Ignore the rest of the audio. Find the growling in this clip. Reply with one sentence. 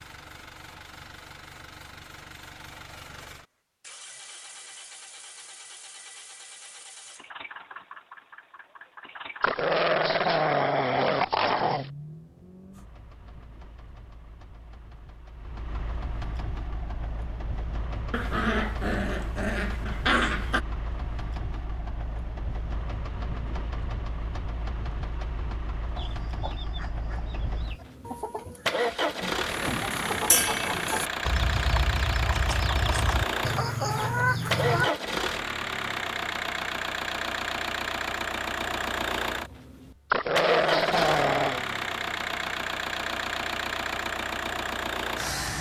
You can hear the growling from 9.4 to 11.9 s, from 18.1 to 20.6 s and from 40.1 to 41.6 s.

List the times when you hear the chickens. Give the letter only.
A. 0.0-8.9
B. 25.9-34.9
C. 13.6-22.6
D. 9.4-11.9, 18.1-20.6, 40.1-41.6
B.